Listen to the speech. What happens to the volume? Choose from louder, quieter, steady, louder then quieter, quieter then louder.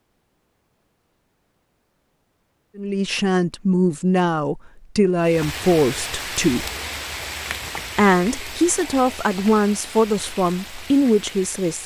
steady.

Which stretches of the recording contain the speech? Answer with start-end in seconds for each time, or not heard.
2.8-6.7, 8.0-11.8.